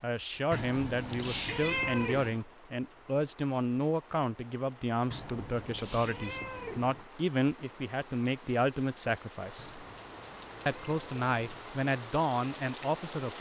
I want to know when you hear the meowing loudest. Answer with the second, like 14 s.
2 s.